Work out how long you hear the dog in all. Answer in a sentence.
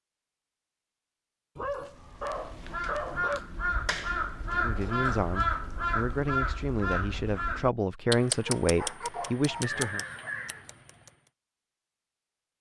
You can hear the dog for 4 seconds altogether.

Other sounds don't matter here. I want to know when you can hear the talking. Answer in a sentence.
The talking can be heard from 4.5 to 10.1 s.